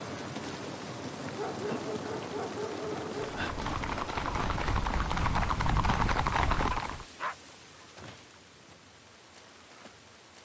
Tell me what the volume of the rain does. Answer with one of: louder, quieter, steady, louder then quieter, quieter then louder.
quieter.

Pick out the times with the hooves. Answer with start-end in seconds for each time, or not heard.
3.3-7.0.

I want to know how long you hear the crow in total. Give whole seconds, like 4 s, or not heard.
not heard.